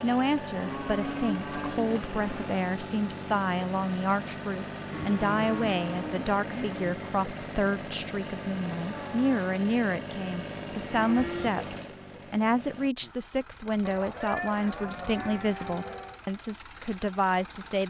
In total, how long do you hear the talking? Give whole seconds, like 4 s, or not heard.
18 s.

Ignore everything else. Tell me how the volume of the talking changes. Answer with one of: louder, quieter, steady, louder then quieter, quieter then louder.
steady.